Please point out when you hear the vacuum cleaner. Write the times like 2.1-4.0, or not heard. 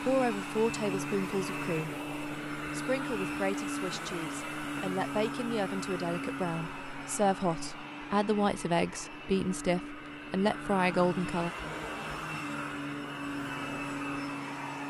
0.0-14.8.